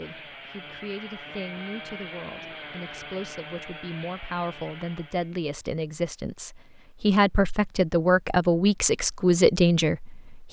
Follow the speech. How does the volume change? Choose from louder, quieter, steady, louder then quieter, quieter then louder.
louder.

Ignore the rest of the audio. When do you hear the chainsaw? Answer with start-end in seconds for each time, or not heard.
0.0-5.3.